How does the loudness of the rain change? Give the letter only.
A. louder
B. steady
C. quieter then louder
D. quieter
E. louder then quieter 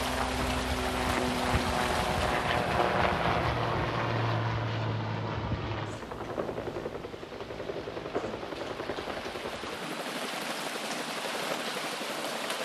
C.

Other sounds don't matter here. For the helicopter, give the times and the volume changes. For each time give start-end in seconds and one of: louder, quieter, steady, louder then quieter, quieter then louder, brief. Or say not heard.
0.0-12.6 quieter.